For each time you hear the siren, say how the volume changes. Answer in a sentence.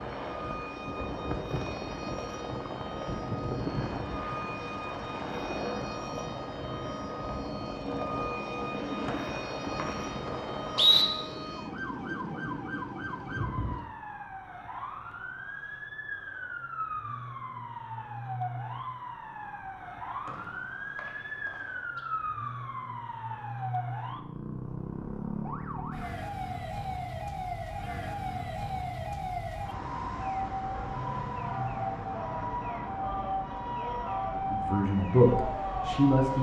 The siren can be heard from 0.0 to 36.3 s, getting louder.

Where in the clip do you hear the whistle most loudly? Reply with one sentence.
The volume of the whistle peaks at 11 seconds.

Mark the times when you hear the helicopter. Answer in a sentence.
The helicopter can be heard from 0.0 to 13.9 s.